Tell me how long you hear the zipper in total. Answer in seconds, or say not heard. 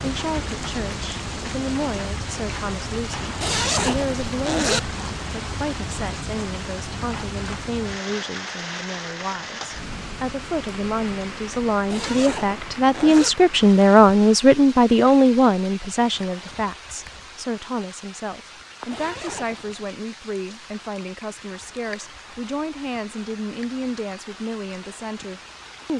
4 s.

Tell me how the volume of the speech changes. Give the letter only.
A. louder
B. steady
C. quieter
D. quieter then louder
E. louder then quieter
E.